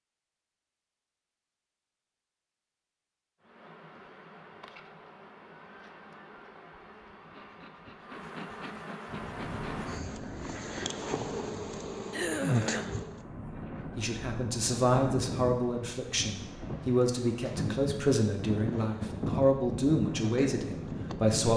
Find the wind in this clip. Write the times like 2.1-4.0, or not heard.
9.1-21.5.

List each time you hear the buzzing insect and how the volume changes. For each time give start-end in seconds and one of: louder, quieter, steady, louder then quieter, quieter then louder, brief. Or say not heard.
3.4-13.2 louder
18.6-21.4 brief.